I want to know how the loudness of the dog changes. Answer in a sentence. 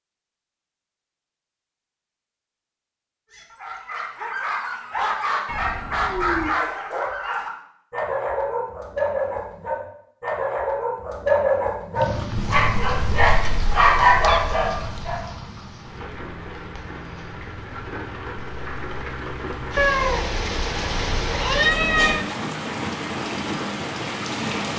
The loudness of the dog goes up.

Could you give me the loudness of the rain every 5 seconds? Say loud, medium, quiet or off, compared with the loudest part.
off, off, medium, medium, loud.